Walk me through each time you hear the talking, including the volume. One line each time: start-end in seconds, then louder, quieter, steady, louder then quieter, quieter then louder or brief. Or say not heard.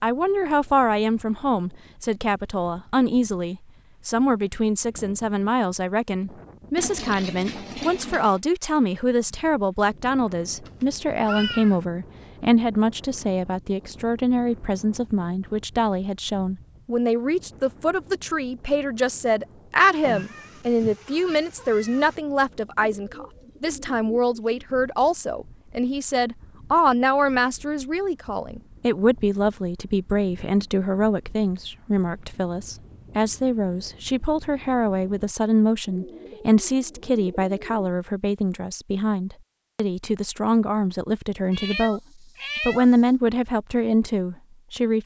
0.0-42.0 steady
42.6-45.0 brief.